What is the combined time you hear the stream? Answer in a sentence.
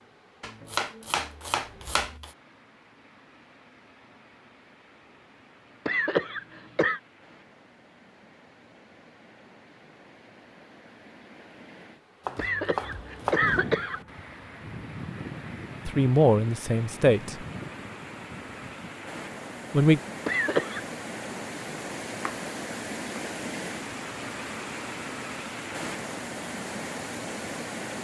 The stream can be heard for 28 seconds in total.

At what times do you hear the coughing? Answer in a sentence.
The coughing can be heard from 5.8 to 7.0 s, from 12.3 to 14.0 s and from 20.2 to 20.9 s.